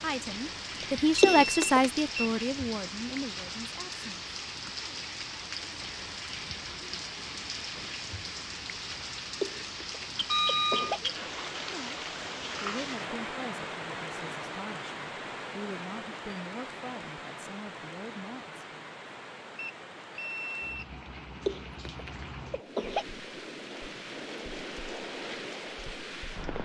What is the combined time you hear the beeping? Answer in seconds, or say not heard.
4 s.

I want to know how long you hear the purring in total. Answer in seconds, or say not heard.
not heard.